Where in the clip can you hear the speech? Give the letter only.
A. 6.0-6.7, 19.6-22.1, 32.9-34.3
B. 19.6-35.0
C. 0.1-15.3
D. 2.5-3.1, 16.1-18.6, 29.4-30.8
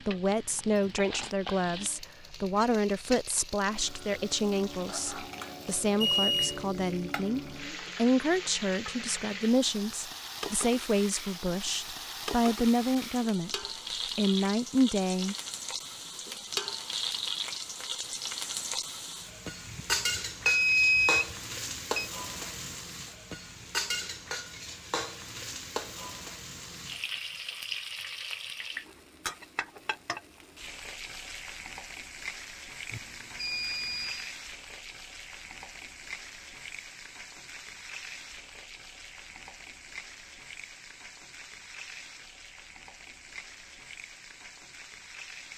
C.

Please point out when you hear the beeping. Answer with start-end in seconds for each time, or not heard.
6.0-6.7, 19.6-22.1, 32.9-34.3.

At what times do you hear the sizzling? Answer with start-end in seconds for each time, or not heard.
0.0-45.5.